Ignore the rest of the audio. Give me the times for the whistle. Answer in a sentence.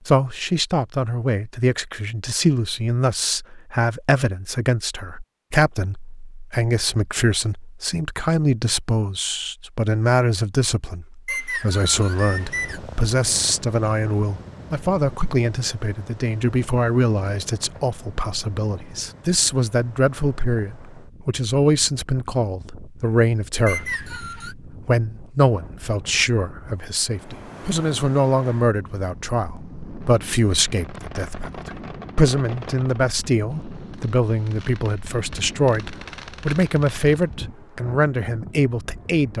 You can hear the whistle from 11.2 to 12.8 s and from 23.6 to 24.6 s.